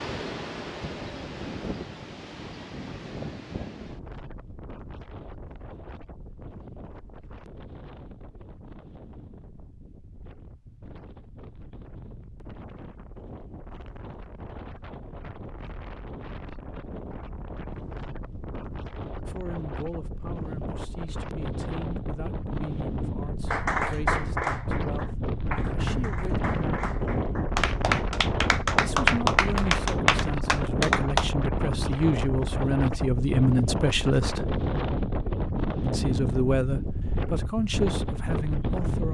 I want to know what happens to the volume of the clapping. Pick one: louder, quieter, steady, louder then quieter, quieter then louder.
quieter then louder.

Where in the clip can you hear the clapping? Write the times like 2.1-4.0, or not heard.
23.5-31.2.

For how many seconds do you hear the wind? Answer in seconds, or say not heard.
39 s.